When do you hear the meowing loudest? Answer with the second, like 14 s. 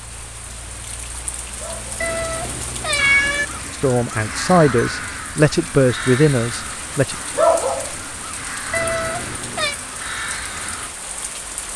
3 s.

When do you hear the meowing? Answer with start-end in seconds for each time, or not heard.
2.0-3.5, 8.7-9.8.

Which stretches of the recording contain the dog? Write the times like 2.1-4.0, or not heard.
1.6-2.1, 7.3-7.9.